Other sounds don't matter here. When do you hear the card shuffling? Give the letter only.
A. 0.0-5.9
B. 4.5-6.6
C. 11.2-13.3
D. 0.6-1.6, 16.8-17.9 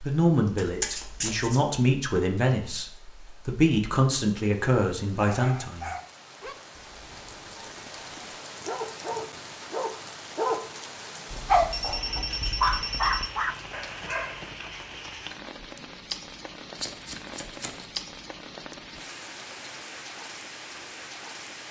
D.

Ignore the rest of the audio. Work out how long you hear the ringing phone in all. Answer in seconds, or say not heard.
2 s.